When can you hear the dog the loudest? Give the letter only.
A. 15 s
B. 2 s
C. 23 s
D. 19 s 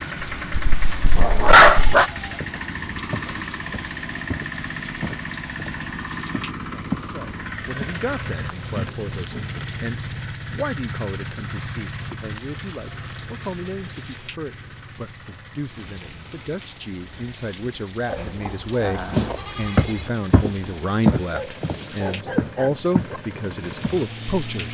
B.